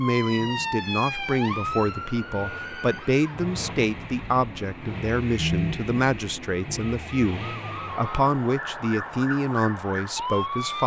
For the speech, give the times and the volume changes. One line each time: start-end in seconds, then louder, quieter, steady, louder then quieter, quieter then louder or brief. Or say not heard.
0.0-10.8 steady.